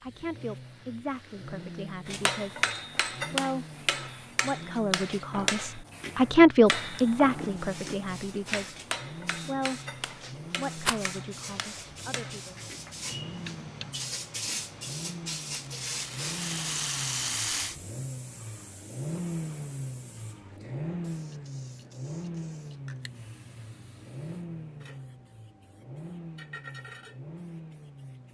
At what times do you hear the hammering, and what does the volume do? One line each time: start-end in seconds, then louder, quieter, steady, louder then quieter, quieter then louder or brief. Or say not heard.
2.0-13.9 quieter.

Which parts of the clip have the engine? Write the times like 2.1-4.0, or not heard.
0.0-28.3.